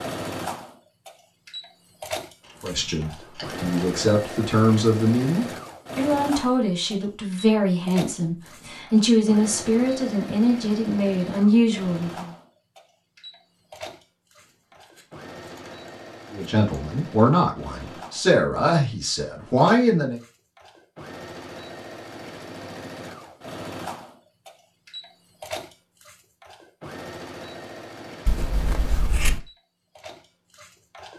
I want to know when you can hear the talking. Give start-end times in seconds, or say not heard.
2.6-12.3, 16.3-20.2.